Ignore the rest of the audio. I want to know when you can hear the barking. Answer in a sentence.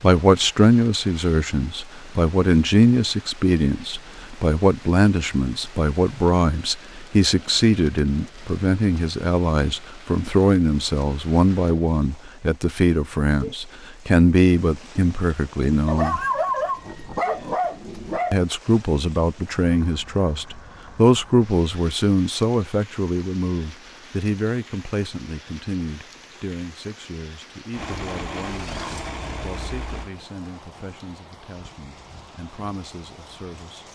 You can hear the barking from 15.8 to 18.4 s.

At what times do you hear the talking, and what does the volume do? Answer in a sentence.
The talking can be heard from 0.0 to 16.2 s, at a steady volume; and from 18.3 to 33.8 s, getting quieter.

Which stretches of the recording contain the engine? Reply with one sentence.
You can hear the engine from 27.7 to 30.1 s.